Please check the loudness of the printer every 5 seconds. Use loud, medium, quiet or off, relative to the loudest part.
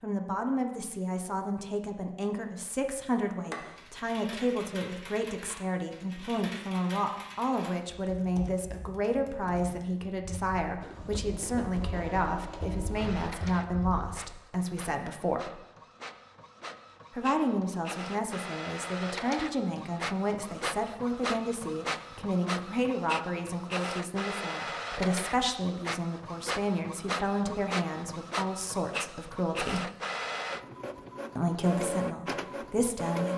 off, off, medium, medium, loud, loud, loud.